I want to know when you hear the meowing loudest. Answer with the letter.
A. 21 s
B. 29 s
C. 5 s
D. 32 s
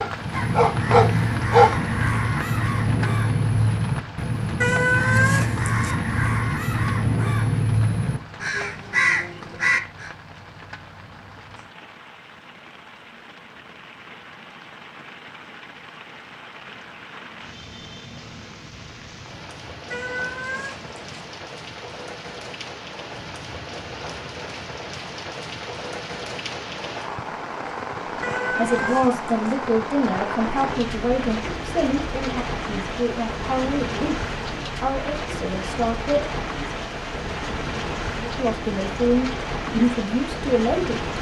C.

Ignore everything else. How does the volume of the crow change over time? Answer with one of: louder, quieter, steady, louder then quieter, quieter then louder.
steady.